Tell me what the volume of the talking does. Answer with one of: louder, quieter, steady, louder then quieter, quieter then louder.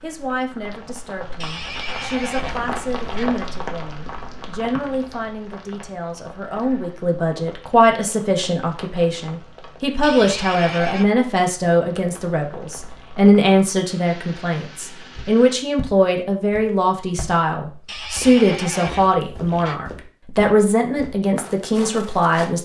louder.